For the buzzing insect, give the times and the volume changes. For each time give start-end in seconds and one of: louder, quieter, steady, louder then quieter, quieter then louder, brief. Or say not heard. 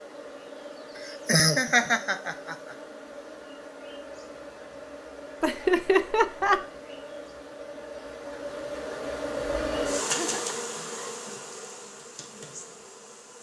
0.0-13.3 louder then quieter.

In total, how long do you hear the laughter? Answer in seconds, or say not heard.
4 s.